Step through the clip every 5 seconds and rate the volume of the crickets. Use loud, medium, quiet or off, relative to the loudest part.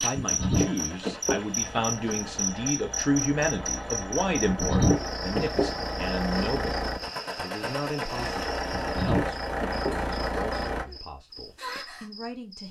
loud, medium, medium.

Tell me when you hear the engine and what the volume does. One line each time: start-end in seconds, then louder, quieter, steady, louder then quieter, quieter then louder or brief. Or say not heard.
0.2-10.8 louder.